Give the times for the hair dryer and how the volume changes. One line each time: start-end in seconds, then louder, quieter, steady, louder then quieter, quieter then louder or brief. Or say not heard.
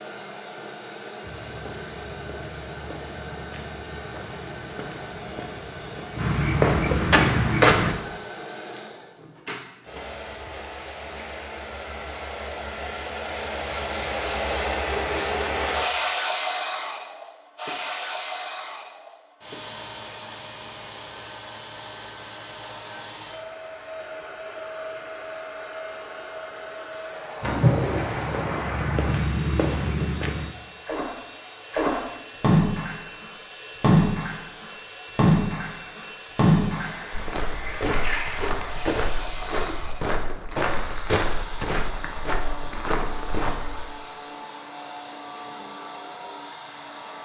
0.0-47.1 louder then quieter.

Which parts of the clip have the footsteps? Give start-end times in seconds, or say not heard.
1.2-8.0, 27.4-30.5, 37.1-43.8.